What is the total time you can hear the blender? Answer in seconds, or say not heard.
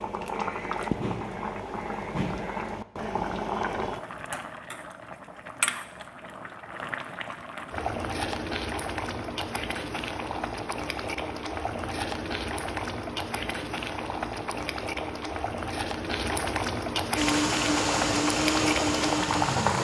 3 s.